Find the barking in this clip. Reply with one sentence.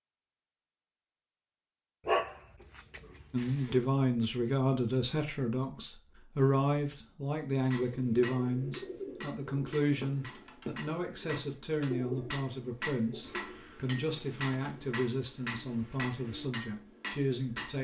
The barking can be heard from 2.0 to 3.8 s.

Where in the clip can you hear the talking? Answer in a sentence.
You can hear the talking from 3.3 to 17.7 s.